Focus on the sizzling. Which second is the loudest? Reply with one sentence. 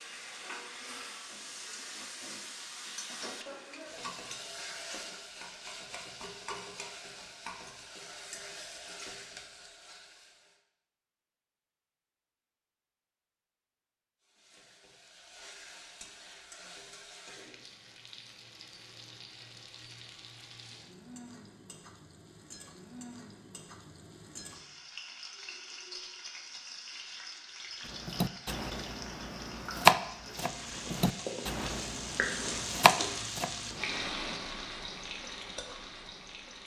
The loudest moment of the sizzling is at 33 seconds.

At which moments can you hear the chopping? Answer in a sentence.
You can hear the chopping from 27.9 to 33.9 s.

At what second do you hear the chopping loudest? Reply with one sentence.
The volume of the chopping peaks at 30 seconds.